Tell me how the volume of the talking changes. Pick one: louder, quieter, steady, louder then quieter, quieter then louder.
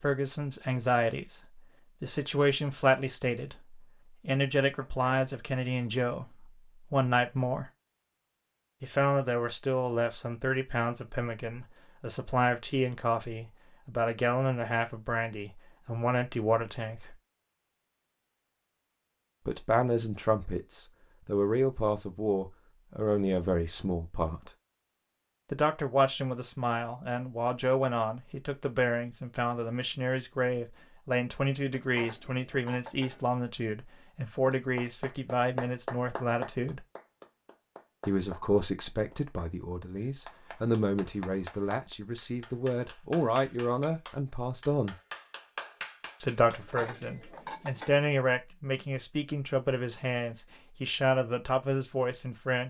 steady.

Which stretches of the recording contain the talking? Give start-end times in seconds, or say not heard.
0.0-7.7, 8.8-17.1, 19.4-24.5, 25.5-36.8, 38.0-45.0, 46.2-52.6.